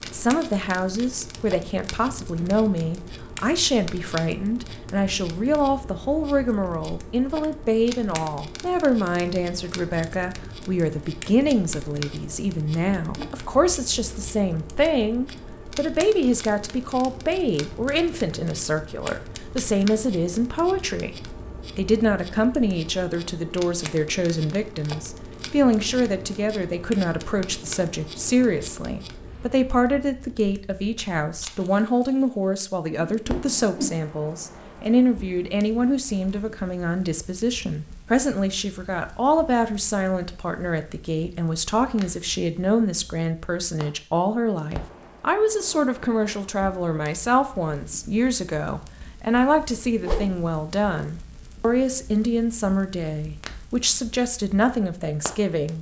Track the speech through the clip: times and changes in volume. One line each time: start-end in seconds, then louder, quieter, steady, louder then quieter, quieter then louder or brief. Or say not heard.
0.1-55.7 steady.